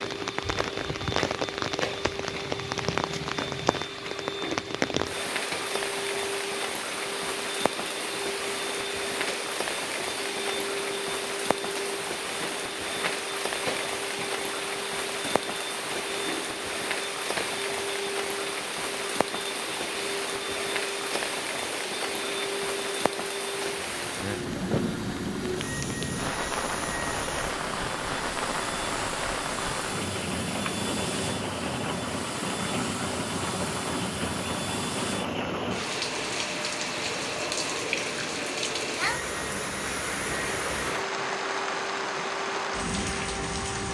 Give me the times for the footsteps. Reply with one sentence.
The footsteps can't be heard in this clip.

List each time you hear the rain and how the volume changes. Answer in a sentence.
You can hear the rain from 0.0 to 43.8 s, at a steady volume.